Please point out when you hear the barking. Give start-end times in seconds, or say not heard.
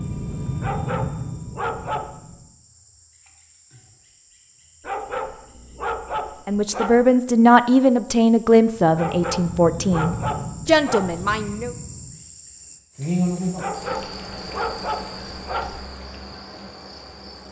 0.6-2.4, 4.8-7.1, 8.9-11.2, 13.6-15.8.